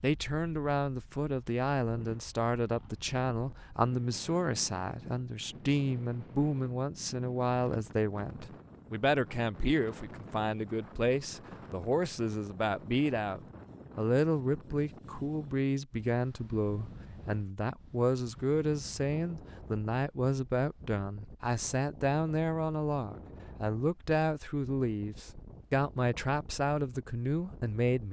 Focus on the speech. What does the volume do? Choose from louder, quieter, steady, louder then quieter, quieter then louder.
steady.